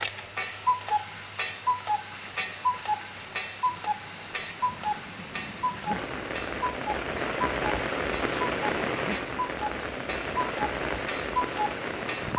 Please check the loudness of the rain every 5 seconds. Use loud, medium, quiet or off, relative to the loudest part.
quiet, loud, loud.